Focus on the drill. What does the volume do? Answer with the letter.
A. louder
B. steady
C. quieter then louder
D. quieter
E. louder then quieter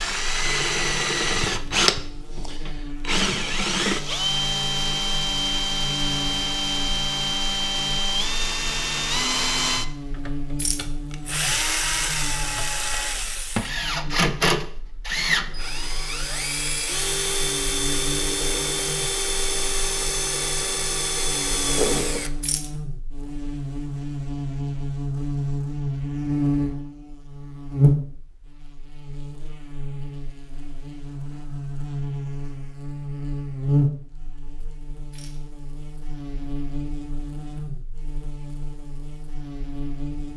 B.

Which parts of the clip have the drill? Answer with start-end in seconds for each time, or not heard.
0.0-22.3.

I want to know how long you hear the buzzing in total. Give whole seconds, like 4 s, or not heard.
40 s.